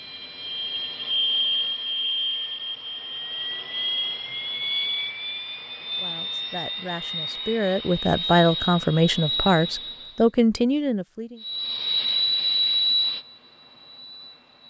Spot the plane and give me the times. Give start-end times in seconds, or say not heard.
0.0-10.2, 11.4-14.6.